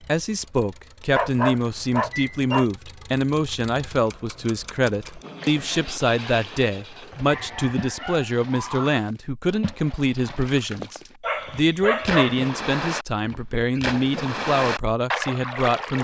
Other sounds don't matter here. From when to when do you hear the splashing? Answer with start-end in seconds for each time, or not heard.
5.0-15.9.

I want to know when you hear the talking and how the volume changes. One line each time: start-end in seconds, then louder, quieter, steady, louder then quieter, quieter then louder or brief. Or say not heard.
0.1-15.9 steady.